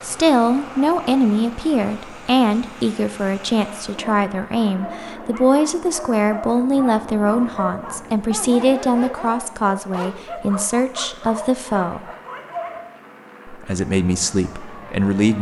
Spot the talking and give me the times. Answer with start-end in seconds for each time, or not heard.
0.0-12.1, 13.4-15.3.